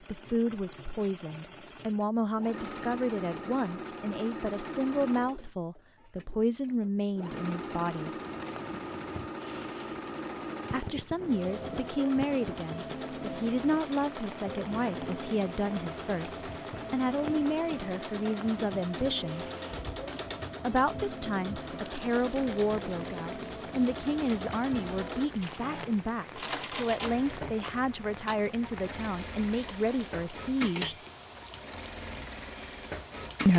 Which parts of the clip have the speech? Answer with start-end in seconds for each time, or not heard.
0.1-8.1, 10.7-19.4, 20.6-30.9.